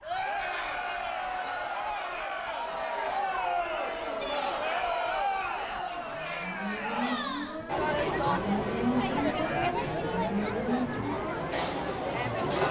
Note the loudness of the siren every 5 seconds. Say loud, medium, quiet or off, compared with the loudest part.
quiet, loud, loud.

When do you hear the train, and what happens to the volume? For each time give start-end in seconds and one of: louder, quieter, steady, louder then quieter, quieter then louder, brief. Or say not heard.
not heard.